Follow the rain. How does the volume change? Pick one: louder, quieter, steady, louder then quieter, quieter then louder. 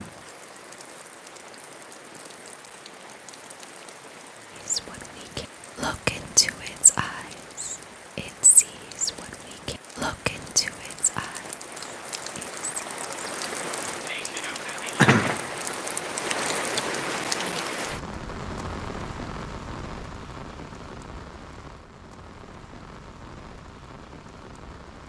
louder then quieter.